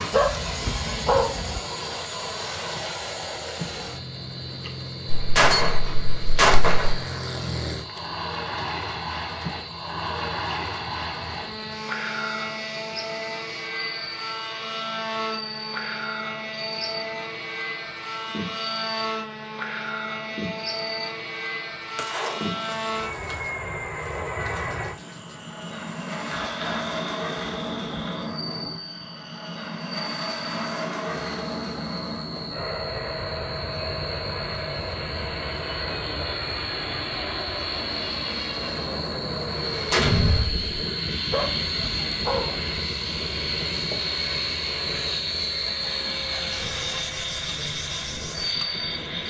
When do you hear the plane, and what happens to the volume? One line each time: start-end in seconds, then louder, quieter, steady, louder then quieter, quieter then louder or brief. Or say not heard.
0.0-49.2 steady.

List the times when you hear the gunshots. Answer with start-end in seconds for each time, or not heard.
5.0-7.0, 21.9-23.4, 39.9-40.6.